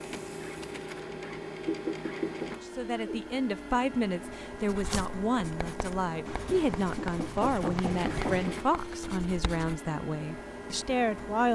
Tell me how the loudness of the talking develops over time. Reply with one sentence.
The loudness of the talking stays about the same.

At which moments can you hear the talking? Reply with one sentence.
The talking can be heard from 2.6 to 11.5 s.